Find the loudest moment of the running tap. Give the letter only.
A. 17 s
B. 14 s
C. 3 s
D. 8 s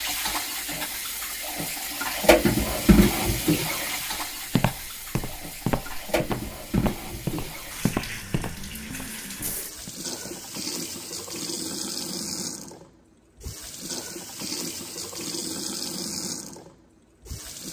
C.